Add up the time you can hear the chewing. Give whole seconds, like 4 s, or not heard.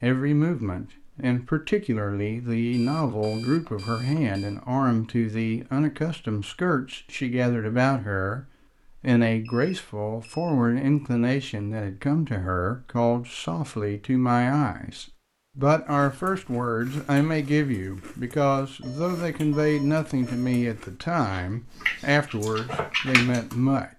8 s.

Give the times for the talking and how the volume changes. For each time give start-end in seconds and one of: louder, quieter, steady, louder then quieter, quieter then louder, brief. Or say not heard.
0.0-23.9 steady.